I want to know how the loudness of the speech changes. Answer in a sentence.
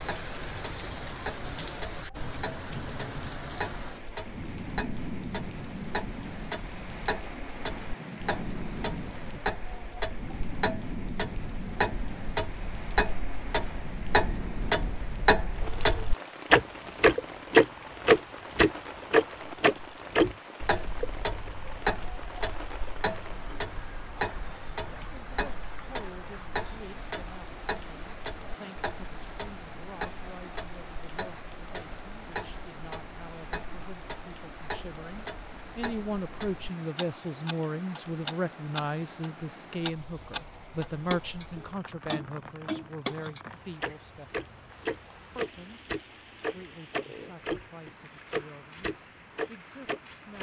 The volume of the speech goes up, then down.